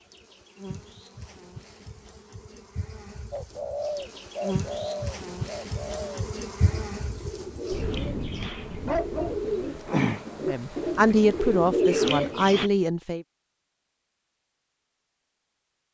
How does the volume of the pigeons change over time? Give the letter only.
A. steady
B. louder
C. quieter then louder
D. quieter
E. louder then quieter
C.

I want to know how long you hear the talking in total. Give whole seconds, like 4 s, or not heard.
3 s.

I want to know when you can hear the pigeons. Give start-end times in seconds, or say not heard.
3.3-12.7.